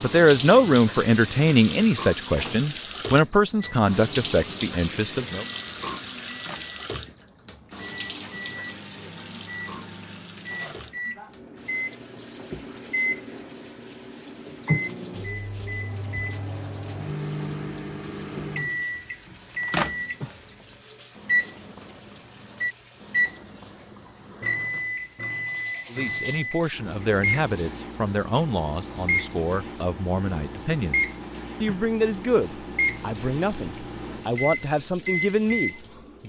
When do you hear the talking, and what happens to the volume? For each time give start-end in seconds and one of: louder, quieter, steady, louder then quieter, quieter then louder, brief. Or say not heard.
0.0-5.5 quieter
25.9-36.2 steady.